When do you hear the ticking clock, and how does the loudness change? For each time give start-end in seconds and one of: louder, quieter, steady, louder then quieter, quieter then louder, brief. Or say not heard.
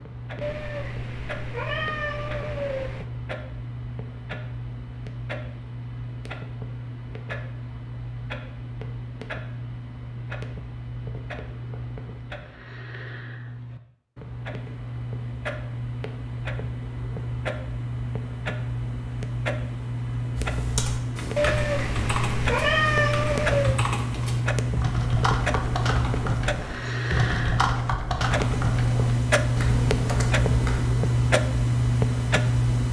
0.0-32.8 louder.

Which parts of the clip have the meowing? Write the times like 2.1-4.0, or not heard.
0.4-3.0, 21.4-23.8.